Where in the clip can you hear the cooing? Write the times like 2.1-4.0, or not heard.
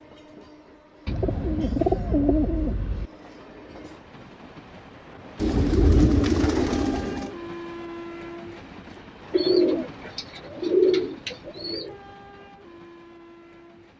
1.1-3.1, 5.3-7.3, 9.3-11.9.